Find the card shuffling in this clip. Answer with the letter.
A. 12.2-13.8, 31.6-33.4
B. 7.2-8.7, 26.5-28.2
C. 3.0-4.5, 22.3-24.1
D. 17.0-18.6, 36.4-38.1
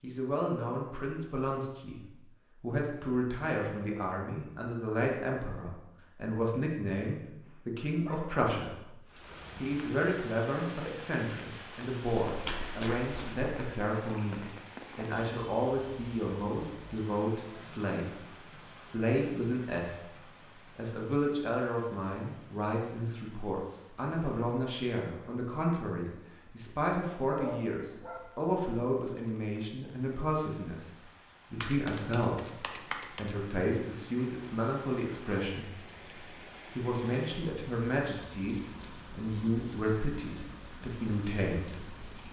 A.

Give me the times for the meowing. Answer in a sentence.
The meowing can't be heard in this clip.